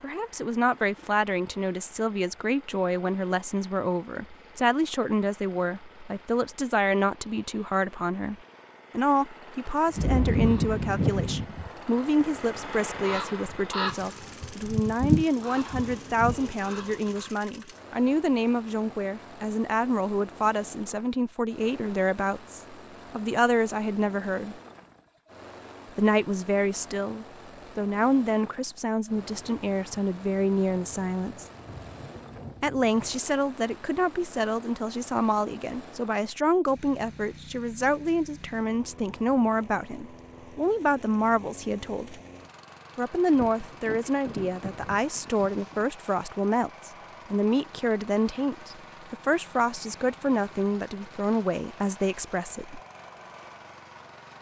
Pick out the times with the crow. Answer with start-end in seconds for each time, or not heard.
9.9-17.3.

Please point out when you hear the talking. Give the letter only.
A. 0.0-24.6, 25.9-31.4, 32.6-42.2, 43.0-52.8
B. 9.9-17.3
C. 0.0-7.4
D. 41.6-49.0
A.